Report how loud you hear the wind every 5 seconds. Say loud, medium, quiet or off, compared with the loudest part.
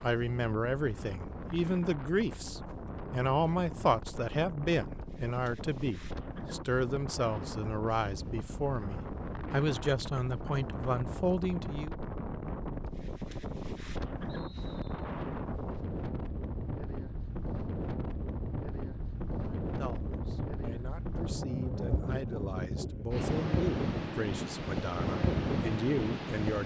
medium, medium, medium, medium, loud, loud.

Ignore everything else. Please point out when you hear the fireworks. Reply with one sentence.
The fireworks can't be heard in this clip.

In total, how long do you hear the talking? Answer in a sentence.
You can hear the talking for 19 seconds altogether.